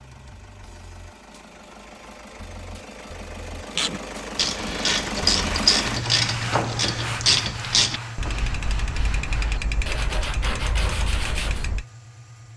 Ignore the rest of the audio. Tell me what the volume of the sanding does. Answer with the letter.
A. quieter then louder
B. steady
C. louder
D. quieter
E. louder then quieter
A.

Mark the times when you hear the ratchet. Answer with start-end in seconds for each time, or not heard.
3.8-11.8.